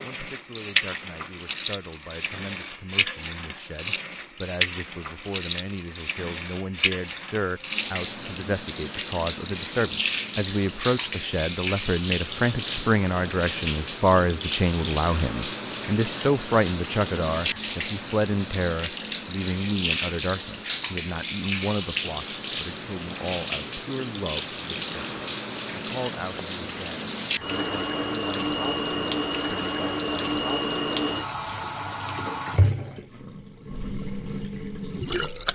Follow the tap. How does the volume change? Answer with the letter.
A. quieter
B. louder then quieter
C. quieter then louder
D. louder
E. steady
E.